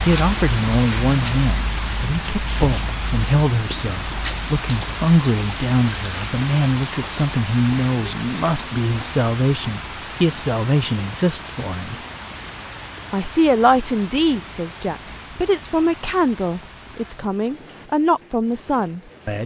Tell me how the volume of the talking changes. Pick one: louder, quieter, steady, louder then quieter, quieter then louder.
steady.